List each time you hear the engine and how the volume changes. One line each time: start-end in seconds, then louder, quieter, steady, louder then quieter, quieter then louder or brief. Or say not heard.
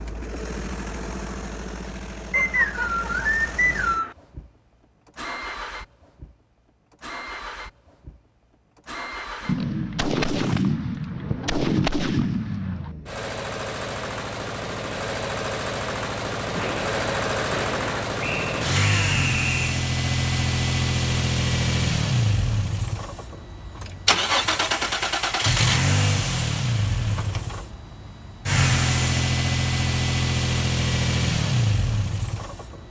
0.0-32.8 louder.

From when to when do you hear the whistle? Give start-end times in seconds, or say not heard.
2.3-4.2, 18.2-19.8.